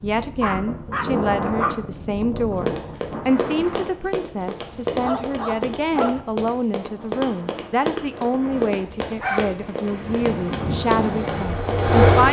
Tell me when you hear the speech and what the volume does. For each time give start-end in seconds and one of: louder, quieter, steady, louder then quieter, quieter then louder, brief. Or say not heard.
0.0-12.2 steady.